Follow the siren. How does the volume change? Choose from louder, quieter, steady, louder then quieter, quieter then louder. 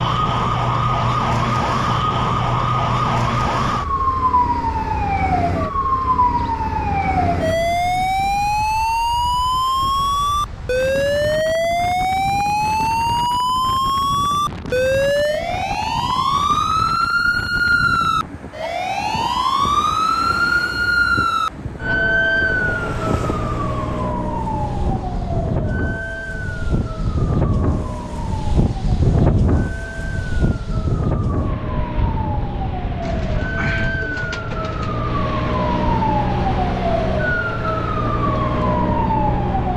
quieter then louder.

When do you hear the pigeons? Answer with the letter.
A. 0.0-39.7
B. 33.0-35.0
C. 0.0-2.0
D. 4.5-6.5
B.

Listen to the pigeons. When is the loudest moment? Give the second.
34 s.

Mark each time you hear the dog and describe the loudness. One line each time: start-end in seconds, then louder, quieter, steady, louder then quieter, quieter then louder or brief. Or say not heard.
not heard.